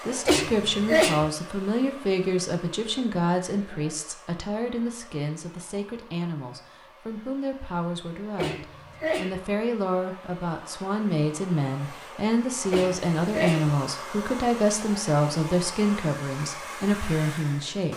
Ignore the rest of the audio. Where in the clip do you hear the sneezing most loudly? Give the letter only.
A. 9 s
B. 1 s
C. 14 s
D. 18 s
B.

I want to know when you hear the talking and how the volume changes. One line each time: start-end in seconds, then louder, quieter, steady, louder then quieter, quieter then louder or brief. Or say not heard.
0.1-17.9 quieter then louder.